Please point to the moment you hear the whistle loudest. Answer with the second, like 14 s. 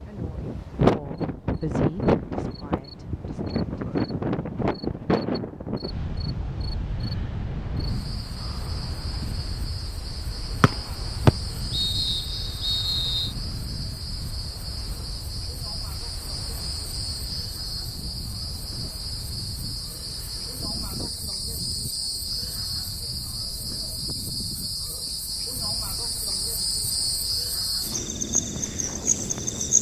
11 s.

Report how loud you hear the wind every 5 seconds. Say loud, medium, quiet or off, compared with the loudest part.
loud, medium, quiet, quiet, quiet, quiet.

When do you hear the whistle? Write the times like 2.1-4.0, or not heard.
10.6-13.3.